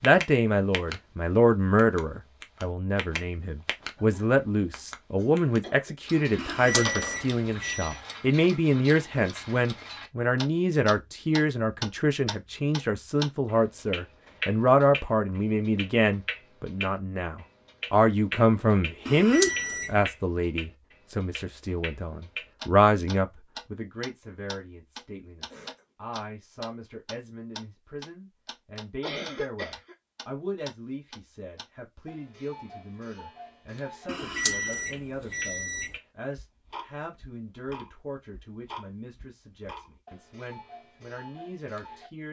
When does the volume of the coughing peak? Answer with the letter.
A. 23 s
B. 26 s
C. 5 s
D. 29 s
D.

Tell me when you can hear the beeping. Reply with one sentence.
The beeping can be heard from 6.3 to 8.0 s, from 19.1 to 19.9 s and from 34.0 to 35.9 s.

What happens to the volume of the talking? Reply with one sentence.
The loudness of the talking goes down.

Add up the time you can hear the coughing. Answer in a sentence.
You can hear the coughing for 3 seconds altogether.